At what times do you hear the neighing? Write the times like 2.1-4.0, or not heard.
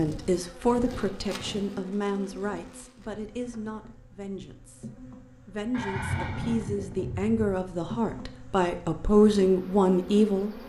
0.7-1.8, 5.7-7.6.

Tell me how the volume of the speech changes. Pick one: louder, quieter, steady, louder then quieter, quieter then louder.
quieter then louder.